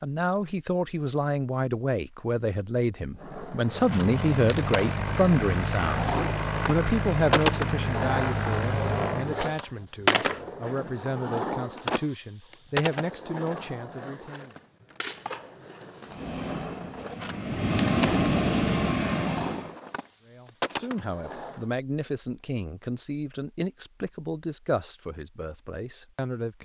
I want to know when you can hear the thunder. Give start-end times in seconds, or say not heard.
not heard.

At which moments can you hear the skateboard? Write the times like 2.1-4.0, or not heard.
3.1-21.6.